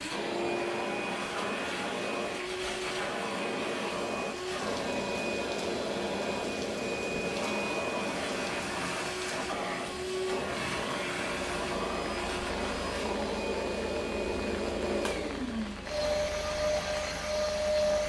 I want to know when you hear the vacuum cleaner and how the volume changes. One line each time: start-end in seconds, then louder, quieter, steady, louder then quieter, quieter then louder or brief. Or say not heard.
0.0-18.0 steady.